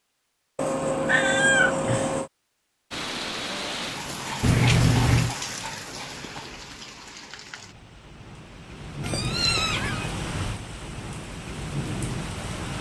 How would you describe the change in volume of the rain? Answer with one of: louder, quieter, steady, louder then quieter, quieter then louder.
quieter then louder.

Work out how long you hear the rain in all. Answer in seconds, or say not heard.
10 s.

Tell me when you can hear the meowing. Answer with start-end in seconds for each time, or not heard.
0.6-2.3, 4.4-5.3, 9.0-10.1.